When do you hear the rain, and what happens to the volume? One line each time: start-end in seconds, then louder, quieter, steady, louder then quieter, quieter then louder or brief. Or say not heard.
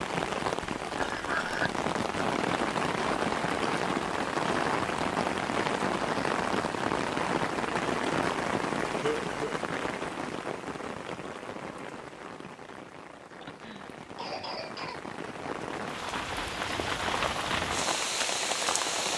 0.0-19.1 quieter then louder.